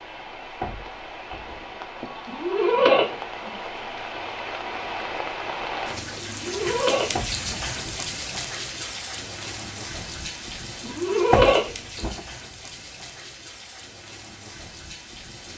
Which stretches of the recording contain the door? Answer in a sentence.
The door can be heard from 0.1 to 1.5 s, from 7.1 to 8.1 s and from 10.8 to 12.2 s.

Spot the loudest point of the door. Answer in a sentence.
The loudest moment of the door is at 11 seconds.